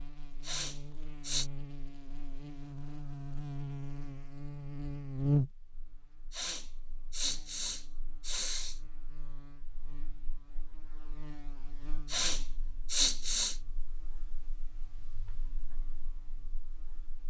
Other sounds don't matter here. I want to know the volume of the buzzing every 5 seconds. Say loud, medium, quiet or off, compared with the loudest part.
medium, loud, quiet, quiet.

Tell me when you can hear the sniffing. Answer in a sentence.
The sniffing can be heard from 0.4 to 1.5 s, from 6.3 to 8.8 s and from 12.1 to 13.6 s.